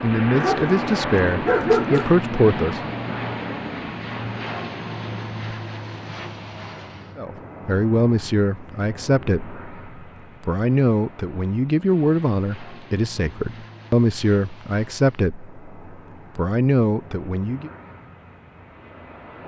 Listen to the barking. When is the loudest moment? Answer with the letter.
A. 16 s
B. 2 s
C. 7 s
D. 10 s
B.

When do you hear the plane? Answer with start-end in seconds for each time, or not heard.
0.0-19.4.